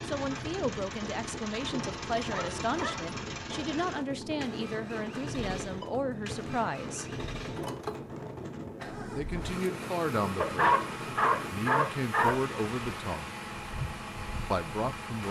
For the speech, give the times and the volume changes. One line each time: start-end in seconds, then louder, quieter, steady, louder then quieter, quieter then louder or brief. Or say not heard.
0.1-7.0 steady
9.2-10.6 brief
11.4-13.3 brief
14.5-15.2 brief.